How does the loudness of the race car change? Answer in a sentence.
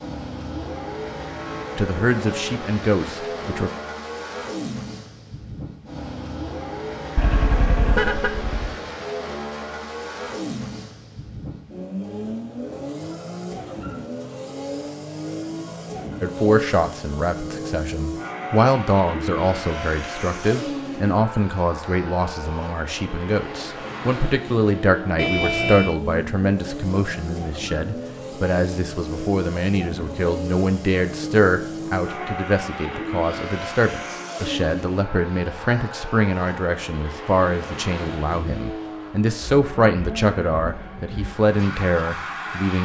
The volume of the race car stays about the same.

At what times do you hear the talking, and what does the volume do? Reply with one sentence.
The talking can be heard briefly from 1.8 to 3.7 s; and from 16.2 to 42.7 s, at a steady volume.